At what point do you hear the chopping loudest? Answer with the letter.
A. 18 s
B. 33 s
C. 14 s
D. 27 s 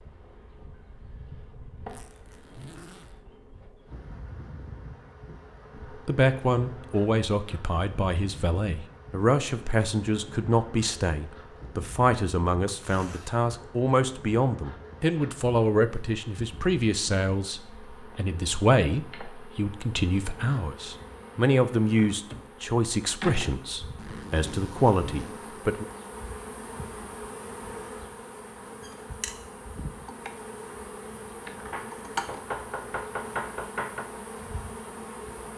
B.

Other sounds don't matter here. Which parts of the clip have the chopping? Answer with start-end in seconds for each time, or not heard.
31.7-34.0.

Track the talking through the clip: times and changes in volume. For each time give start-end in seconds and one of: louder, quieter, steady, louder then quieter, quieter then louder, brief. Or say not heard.
5.9-25.9 steady.